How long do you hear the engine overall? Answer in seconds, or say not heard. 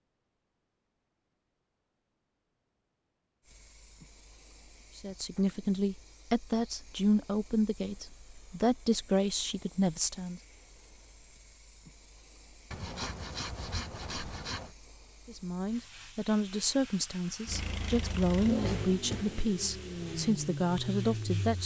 4 s.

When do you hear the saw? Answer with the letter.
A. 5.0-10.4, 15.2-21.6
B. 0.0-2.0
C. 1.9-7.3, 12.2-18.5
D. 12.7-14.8
D.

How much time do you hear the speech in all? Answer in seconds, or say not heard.
12 s.